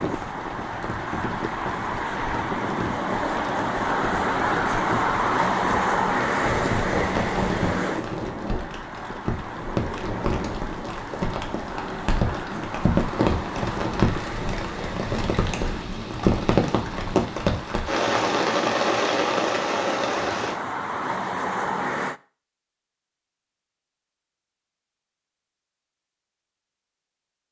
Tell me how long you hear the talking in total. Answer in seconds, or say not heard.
not heard.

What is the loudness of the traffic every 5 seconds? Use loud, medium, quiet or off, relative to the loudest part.
loud, loud, medium, medium, loud, off.